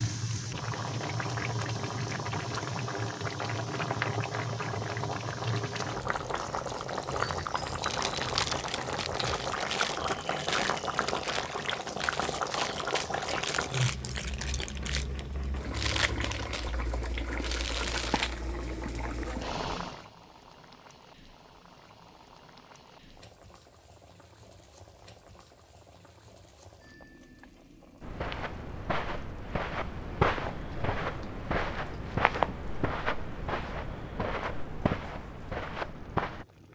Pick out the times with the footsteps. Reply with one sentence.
The footsteps can be heard from 28.0 to 36.5 s.